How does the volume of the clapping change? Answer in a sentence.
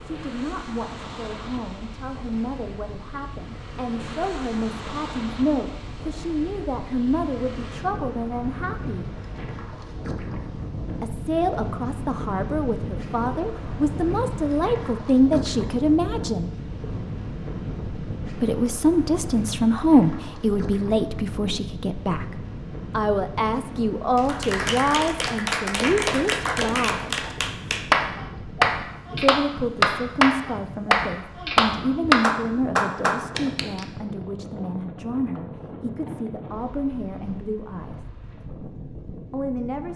The volume of the clapping goes up.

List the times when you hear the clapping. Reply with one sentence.
You can hear the clapping from 24.1 to 33.9 s.